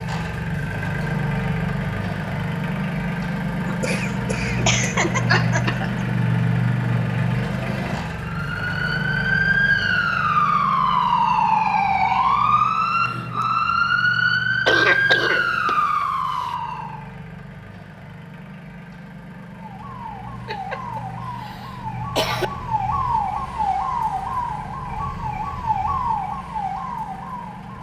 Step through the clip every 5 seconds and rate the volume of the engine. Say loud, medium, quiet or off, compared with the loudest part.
loud, loud, medium, quiet, quiet, quiet.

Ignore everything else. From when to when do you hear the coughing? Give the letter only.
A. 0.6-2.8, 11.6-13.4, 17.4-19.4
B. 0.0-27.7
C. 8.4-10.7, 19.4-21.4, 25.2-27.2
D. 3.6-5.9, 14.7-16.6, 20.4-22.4
D.